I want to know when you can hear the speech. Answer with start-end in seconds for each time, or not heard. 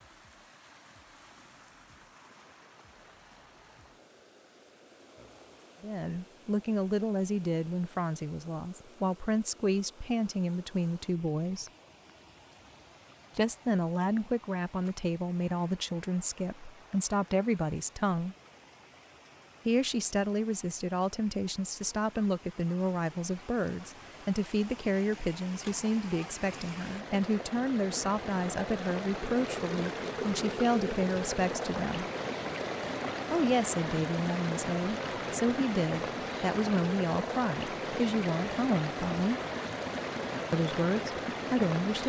5.8-11.7, 13.3-18.4, 19.6-32.0, 33.3-39.4, 40.5-42.0.